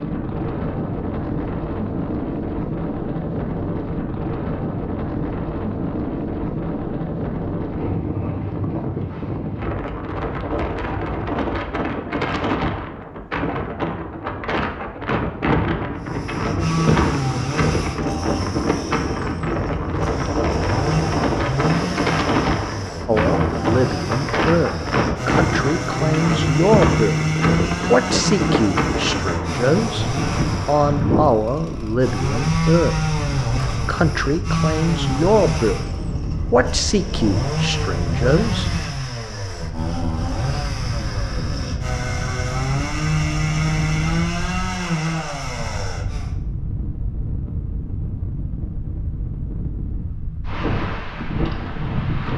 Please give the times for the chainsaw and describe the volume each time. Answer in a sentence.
You can hear the chainsaw from 16.0 to 46.4 s, at a steady volume.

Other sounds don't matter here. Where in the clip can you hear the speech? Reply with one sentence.
You can hear the speech from 23.1 to 27.2 s, from 27.9 to 35.8 s and from 36.5 to 38.7 s.